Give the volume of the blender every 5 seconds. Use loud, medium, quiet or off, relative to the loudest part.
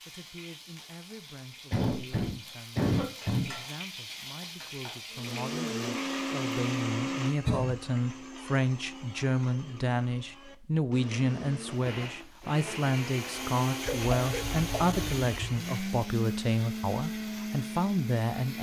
off, loud, loud, loud.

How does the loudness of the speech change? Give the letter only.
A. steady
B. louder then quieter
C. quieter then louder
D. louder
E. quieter
D.